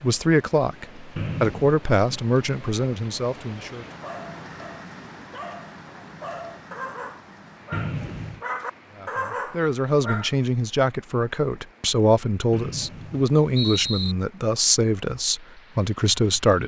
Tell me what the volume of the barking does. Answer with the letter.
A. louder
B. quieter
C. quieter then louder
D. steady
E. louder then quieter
A.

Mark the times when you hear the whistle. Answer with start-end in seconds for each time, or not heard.
1.1-1.8, 7.7-8.4, 12.5-14.2.